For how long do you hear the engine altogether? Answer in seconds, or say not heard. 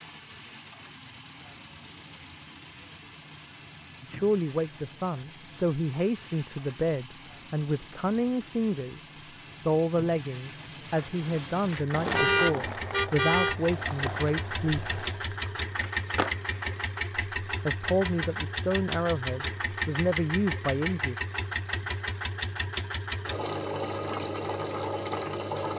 26 s.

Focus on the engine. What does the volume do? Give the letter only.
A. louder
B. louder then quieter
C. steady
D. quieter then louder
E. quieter
A.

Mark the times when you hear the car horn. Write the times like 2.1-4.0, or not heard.
12.1-13.6.